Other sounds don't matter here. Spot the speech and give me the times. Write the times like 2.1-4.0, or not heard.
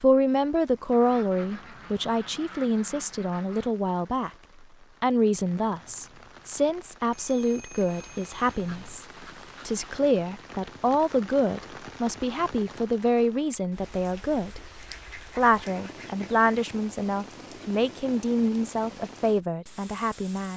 0.0-4.3, 5.0-9.1, 9.7-14.6, 15.3-20.5.